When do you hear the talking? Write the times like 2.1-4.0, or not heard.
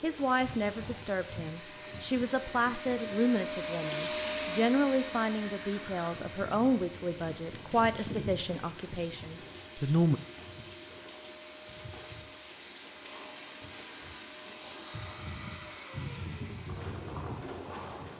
0.0-10.2.